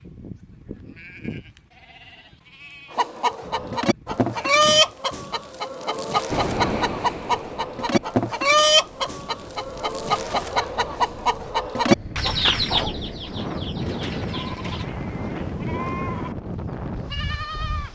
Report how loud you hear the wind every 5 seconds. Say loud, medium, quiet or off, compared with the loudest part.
off, loud, loud, loud.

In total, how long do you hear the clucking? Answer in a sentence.
The clucking can be heard for 12 seconds in total.